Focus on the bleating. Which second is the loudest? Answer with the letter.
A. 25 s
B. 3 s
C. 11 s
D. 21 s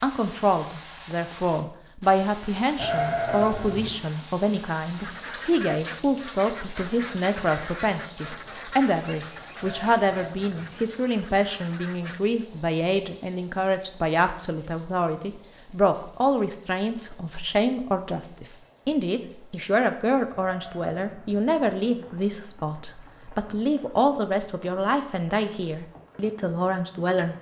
B.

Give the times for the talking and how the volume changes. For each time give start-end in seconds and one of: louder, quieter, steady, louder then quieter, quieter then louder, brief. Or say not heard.
0.0-27.3 steady.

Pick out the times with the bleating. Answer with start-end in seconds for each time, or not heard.
2.8-3.9, 9.6-10.6, 20.4-21.4.